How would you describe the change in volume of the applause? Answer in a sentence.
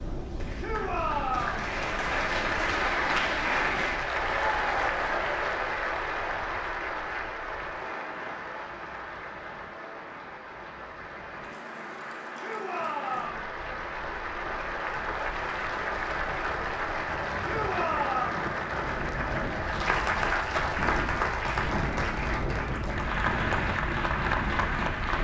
The volume of the applause goes down, then up.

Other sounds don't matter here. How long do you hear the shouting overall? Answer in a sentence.
You can hear the shouting for 3 seconds altogether.